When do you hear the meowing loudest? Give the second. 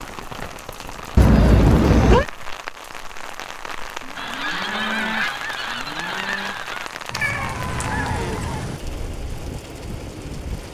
2 s.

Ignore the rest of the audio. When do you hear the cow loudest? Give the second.
5 s.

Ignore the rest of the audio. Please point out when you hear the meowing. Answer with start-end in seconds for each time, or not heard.
1.1-2.2, 7.1-8.4.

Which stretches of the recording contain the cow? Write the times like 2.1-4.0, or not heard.
4.0-6.5.